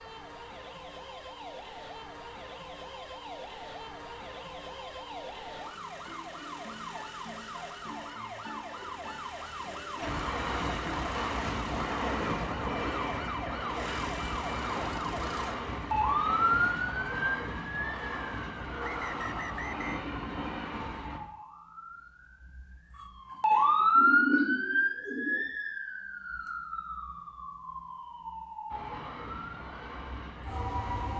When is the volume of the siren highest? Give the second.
24 s.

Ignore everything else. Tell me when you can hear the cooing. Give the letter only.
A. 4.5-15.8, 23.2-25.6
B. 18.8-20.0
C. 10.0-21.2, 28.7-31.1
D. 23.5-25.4
D.